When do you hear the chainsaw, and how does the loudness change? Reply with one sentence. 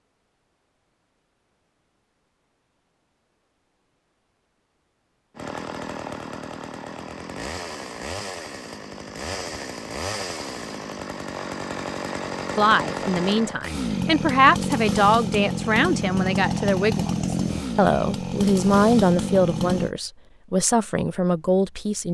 You can hear the chainsaw from 5.3 to 19.9 s, getting louder.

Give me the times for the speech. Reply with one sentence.
You can hear the speech from 12.6 to 22.0 s.